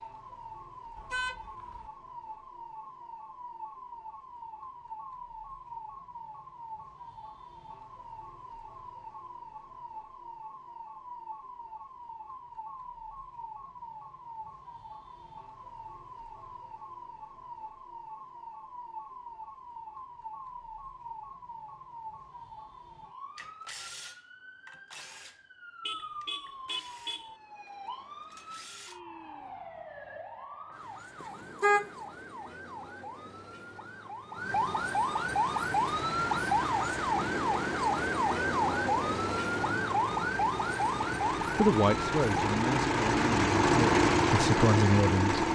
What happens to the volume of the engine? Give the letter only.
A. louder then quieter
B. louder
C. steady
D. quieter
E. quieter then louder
B.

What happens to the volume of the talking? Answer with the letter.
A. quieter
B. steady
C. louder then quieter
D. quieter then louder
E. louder
D.